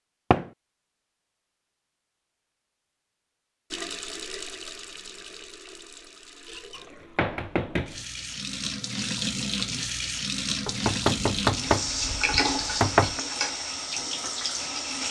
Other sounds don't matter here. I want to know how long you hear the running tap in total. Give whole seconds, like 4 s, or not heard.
11 s.